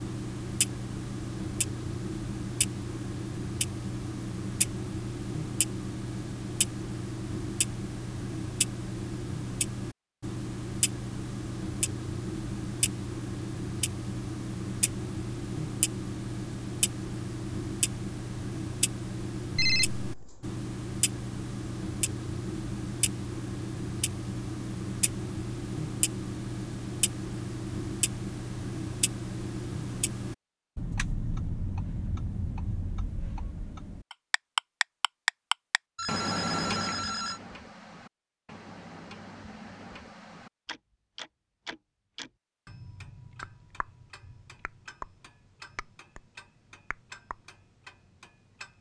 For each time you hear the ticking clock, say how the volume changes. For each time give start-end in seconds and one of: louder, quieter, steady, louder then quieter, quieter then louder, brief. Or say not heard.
0.0-48.7 quieter.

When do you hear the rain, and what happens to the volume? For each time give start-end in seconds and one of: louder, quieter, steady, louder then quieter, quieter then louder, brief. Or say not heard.
not heard.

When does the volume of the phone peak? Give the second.
20 s.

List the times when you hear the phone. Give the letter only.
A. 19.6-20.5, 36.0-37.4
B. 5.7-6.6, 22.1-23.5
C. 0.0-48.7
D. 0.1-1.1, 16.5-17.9
A.